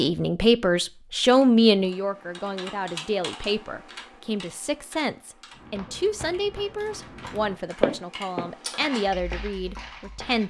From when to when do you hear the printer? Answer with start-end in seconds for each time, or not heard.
not heard.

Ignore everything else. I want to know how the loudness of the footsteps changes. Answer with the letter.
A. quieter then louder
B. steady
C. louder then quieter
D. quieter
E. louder
C.